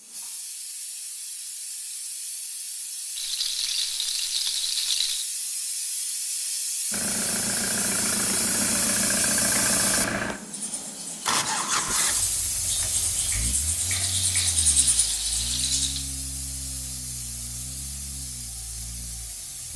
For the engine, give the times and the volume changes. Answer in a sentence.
The engine can be heard from 6.9 to 19.7 s, getting quieter.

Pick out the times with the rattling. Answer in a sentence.
You can hear the rattling from 3.1 to 5.2 s and from 13.9 to 16.1 s.